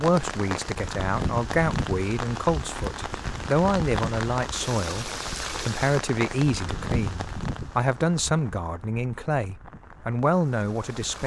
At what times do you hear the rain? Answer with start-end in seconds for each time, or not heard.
0.0-11.2.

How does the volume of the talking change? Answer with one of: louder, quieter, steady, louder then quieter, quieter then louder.
steady.